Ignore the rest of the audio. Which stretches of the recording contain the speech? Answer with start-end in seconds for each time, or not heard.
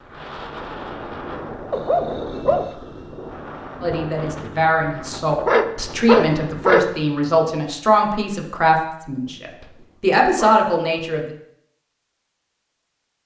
3.8-11.3.